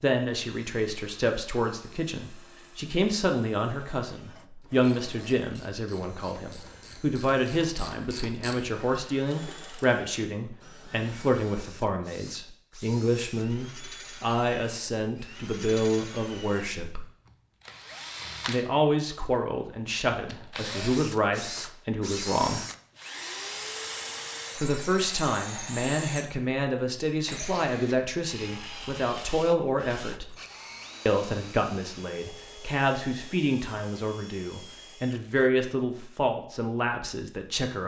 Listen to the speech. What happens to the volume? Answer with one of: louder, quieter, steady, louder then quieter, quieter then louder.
steady.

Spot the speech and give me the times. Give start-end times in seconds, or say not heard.
0.0-17.1, 18.4-22.6, 24.6-30.4, 31.1-37.8.